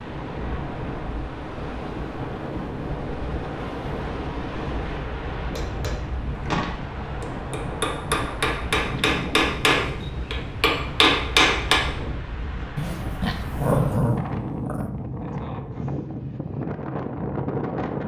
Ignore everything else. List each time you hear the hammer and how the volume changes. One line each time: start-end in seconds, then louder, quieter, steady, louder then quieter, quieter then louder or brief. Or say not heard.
5.5-11.8 louder.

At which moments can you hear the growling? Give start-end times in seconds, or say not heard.
12.8-14.9.